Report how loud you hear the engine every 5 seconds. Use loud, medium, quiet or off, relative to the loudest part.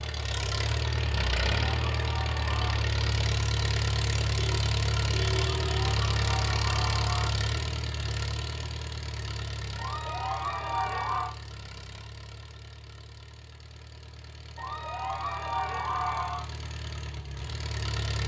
loud, loud, quiet, medium.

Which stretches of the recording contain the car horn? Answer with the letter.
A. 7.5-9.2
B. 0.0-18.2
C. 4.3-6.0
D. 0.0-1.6
C.